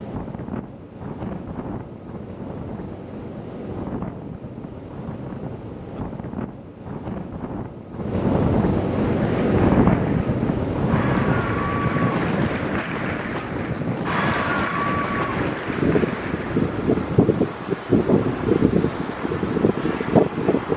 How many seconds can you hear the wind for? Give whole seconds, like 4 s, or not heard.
21 s.